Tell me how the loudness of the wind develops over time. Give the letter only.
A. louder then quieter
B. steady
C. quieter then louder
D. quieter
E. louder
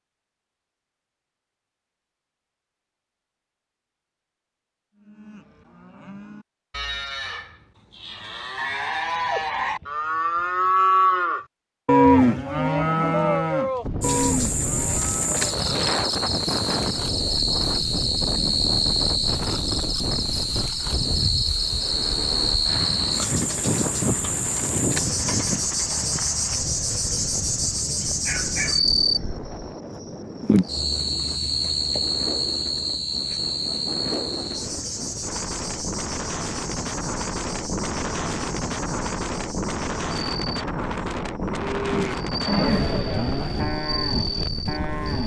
C.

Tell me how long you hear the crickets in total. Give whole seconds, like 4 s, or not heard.
30 s.